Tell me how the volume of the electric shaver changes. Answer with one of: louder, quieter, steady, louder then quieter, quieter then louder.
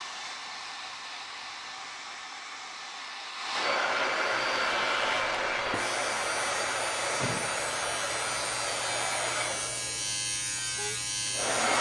louder.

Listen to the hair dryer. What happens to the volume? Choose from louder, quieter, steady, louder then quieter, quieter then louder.
louder then quieter.